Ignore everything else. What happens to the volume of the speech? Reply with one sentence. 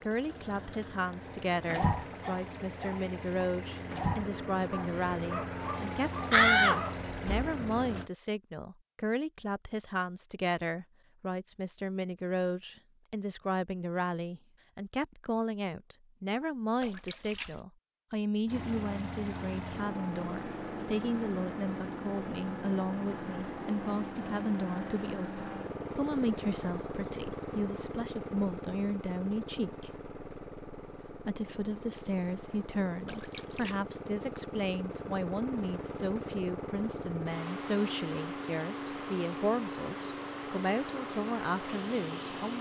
The loudness of the speech stays about the same.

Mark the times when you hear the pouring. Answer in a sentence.
You can hear the pouring from 16.8 to 17.6 s and from 33.0 to 33.8 s.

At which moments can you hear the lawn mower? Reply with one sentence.
You can hear the lawn mower from 0.0 to 8.1 s and from 18.4 to 42.5 s.